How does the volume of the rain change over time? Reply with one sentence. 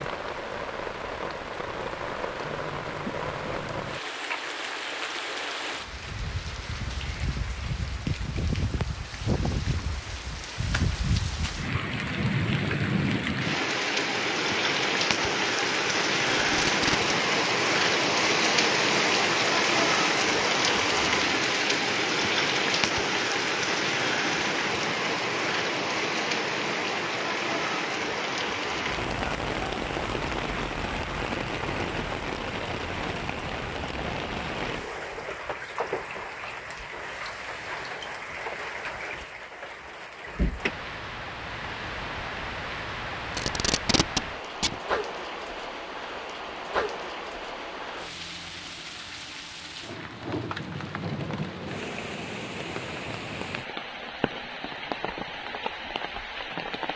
The volume of the rain goes up, then down.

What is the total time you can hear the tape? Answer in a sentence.
You can hear the tape for 2 seconds altogether.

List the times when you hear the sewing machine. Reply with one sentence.
The sewing machine can't be heard in this clip.